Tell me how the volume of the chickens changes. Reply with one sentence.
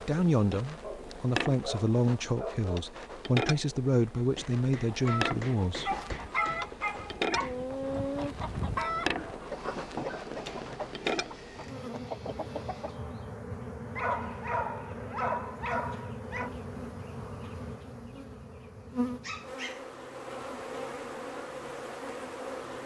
The loudness of the chickens goes down.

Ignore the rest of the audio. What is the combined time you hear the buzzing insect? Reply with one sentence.
You can hear the buzzing insect for 23 seconds altogether.